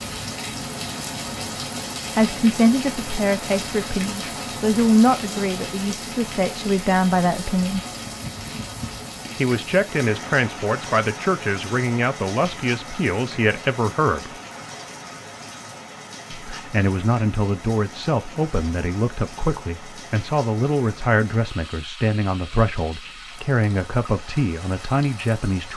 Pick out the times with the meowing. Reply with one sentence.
The meowing can't be heard in this clip.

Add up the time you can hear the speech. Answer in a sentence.
The speech can be heard for 20 seconds in total.